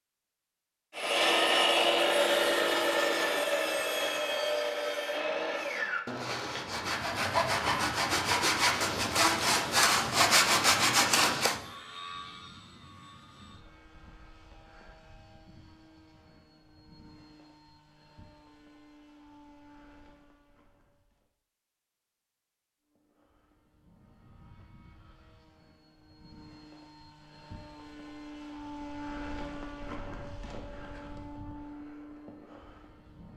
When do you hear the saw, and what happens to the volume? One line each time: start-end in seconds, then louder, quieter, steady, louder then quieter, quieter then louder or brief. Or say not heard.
0.9-11.6 quieter then louder.